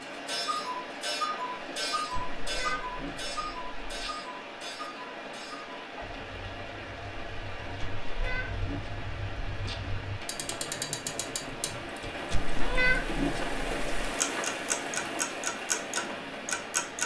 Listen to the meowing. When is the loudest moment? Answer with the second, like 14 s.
13 s.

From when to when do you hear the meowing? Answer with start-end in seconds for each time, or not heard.
2.1-4.1, 7.8-9.8, 12.3-14.1.